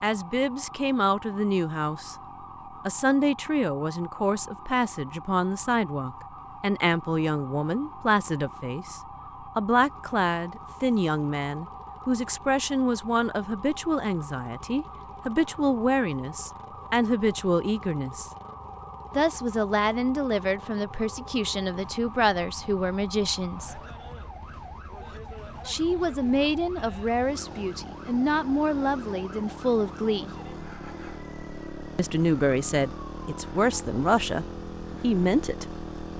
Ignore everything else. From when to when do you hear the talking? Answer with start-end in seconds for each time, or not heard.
0.0-2.1, 2.9-18.3, 19.1-23.8, 25.6-30.3, 31.9-36.1.